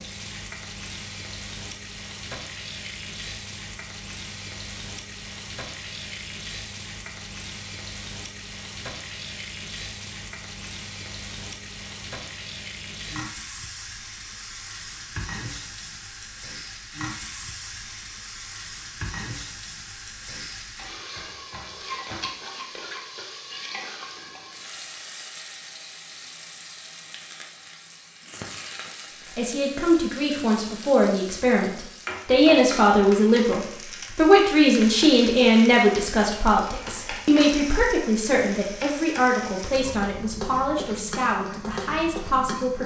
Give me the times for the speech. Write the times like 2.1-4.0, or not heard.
29.3-42.8.